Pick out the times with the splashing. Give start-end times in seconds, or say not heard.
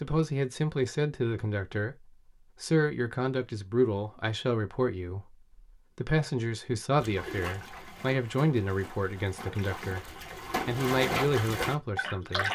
7.0-12.4.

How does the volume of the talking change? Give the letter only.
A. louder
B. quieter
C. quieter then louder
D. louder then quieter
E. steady
E.